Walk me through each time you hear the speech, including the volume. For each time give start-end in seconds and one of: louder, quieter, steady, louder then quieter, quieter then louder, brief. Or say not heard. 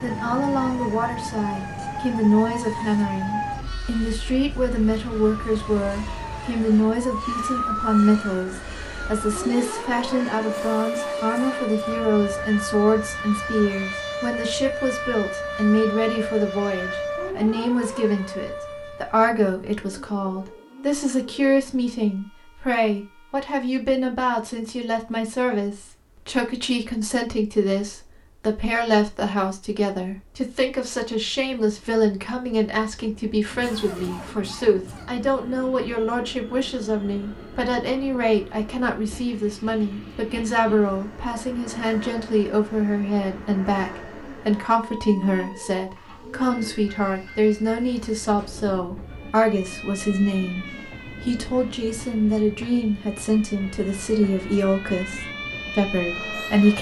0.0-56.7 steady.